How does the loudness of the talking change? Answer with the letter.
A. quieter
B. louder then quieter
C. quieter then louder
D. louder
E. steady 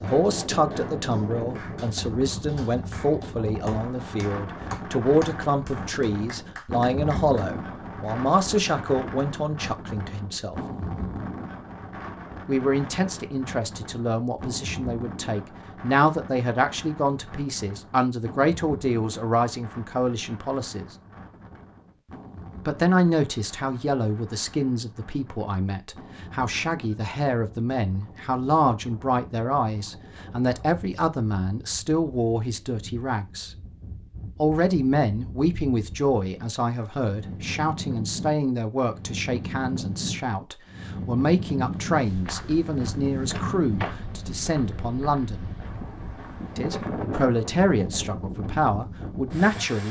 E.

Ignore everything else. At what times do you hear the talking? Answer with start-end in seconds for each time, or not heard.
0.0-10.6, 12.4-20.9, 22.6-33.5, 34.4-45.5, 46.5-49.8.